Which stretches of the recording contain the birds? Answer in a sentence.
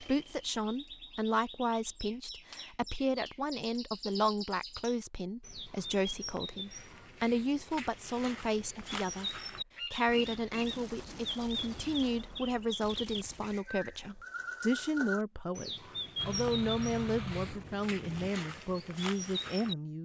The birds can be heard from 0.0 to 19.8 s.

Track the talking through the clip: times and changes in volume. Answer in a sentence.
The talking can be heard from 0.0 to 19.9 s, at a steady volume.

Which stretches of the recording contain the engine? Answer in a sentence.
You can hear the engine from 16.1 to 18.3 s.